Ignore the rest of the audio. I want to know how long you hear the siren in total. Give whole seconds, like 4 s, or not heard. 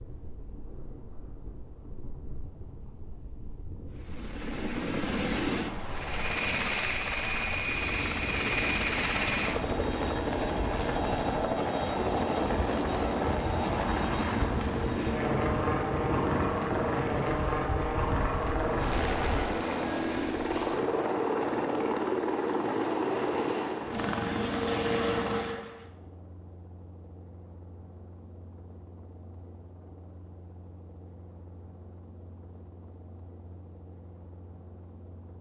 not heard.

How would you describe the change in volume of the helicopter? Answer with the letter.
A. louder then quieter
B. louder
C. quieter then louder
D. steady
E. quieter
E.